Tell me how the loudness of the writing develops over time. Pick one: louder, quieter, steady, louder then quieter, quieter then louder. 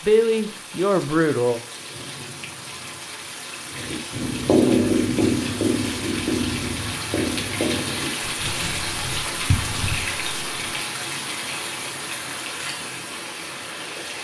quieter.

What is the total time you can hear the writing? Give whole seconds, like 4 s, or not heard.
7 s.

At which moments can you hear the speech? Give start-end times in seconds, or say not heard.
0.0-1.6.